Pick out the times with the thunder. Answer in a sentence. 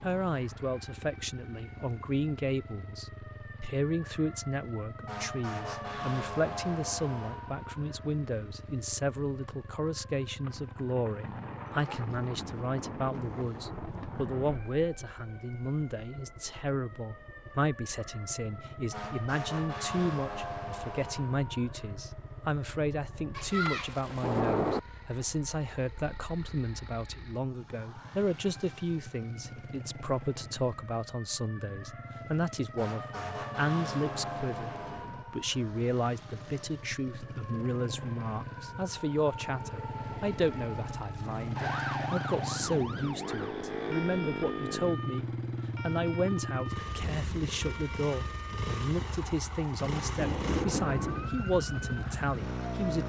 The thunder can be heard from 10.4 to 14.7 s, from 23.3 to 24.8 s and from 50.1 to 51.3 s.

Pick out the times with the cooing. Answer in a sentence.
The cooing can't be heard in this clip.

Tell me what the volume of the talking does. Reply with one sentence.
The loudness of the talking stays about the same.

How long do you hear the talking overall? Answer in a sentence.
You can hear the talking for 53 seconds altogether.